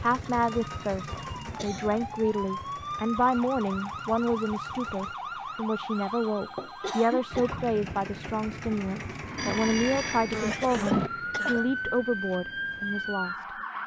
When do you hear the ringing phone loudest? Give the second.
11 s.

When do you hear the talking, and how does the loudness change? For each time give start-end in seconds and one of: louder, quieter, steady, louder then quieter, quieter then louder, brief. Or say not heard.
0.0-13.4 steady.